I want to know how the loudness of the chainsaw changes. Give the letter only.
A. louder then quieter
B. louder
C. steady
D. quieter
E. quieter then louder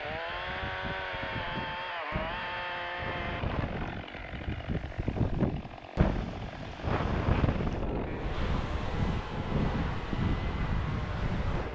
D.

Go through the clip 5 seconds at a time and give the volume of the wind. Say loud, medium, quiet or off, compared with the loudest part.
medium, loud, loud.